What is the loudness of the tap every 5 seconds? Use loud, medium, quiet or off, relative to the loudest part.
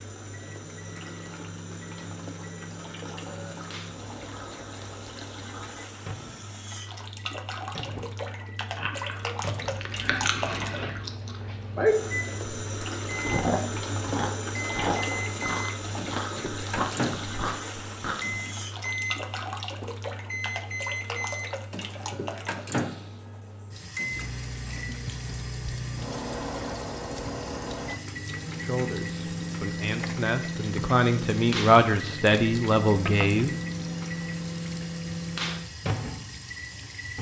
medium, loud, loud, loud, medium, medium, medium, medium.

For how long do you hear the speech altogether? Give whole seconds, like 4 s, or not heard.
5 s.